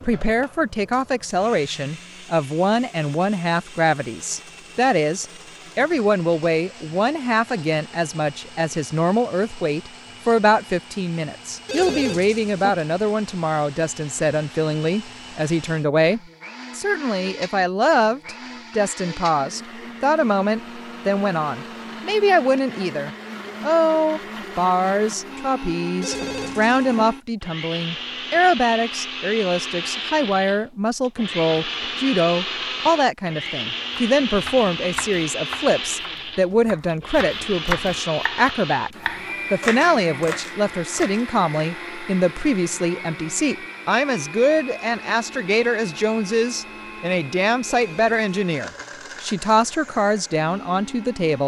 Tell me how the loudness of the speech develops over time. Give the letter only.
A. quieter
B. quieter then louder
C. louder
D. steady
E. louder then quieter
D.